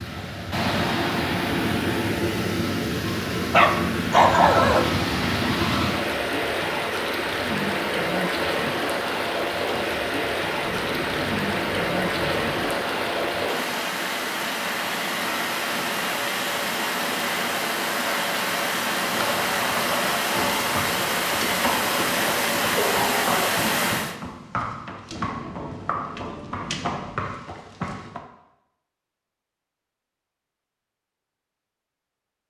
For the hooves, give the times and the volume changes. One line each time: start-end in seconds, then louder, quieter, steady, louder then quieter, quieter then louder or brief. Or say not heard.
18.9-28.2 steady.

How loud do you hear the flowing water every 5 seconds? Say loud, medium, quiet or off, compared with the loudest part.
loud, loud, loud, loud, loud, off, off.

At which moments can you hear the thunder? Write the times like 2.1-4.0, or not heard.
10.6-12.7, 25.1-27.1.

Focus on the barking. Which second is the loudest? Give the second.
4 s.